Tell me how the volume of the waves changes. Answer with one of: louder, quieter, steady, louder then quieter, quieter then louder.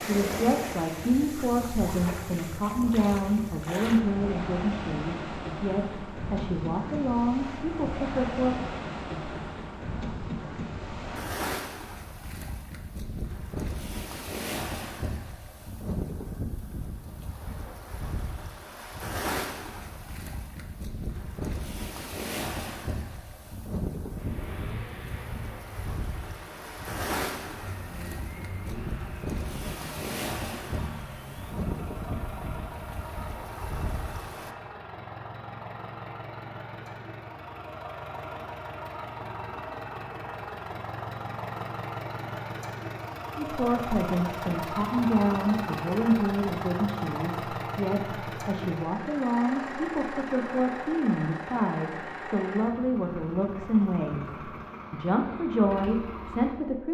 steady.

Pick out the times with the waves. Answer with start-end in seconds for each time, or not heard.
0.0-34.5.